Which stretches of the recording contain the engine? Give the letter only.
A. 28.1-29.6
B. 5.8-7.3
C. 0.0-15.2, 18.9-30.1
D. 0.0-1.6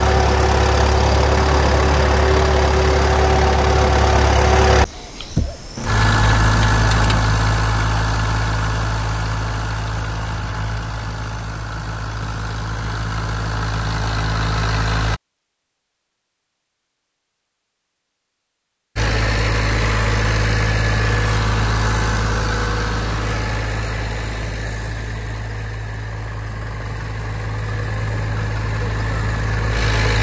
C.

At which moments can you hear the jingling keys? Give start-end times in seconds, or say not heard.
5.8-7.3.